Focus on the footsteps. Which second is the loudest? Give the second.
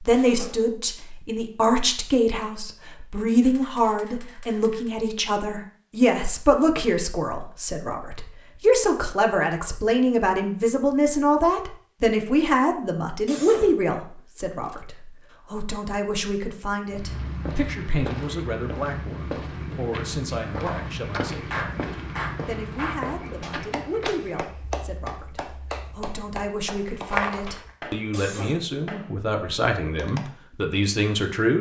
27 s.